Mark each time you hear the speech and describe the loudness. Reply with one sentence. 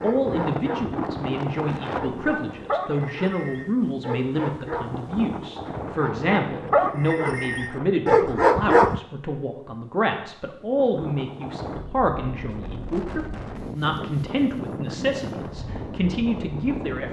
The speech can be heard from 0.0 to 17.0 s, at a steady volume.